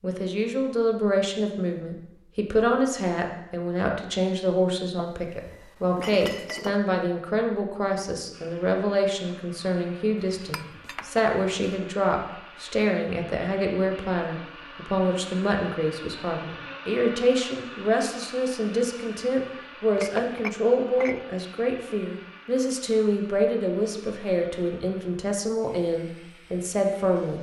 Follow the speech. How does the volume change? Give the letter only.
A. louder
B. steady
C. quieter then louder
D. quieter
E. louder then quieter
B.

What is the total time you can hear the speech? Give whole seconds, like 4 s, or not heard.
27 s.